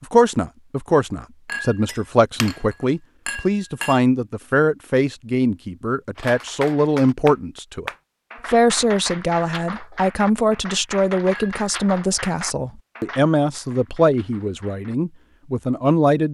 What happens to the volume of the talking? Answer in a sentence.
The volume of the talking stays about the same.